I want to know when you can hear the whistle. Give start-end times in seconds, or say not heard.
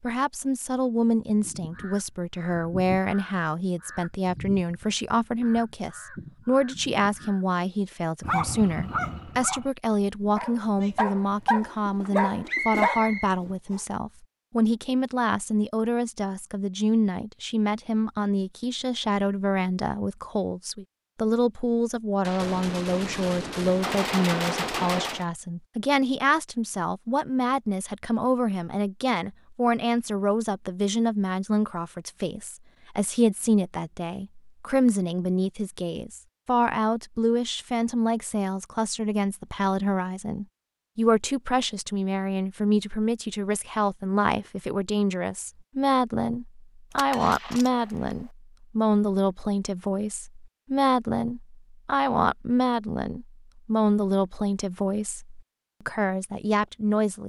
12.4-13.8.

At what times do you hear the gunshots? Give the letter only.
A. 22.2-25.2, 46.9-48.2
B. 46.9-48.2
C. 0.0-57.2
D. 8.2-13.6
A.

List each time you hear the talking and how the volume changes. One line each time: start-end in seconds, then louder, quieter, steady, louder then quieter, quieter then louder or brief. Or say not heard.
0.0-57.2 steady.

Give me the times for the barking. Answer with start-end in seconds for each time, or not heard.
8.2-13.6.